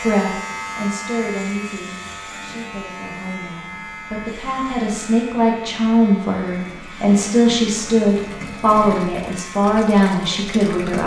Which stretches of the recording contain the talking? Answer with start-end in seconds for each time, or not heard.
0.0-11.0.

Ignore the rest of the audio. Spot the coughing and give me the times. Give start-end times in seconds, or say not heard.
not heard.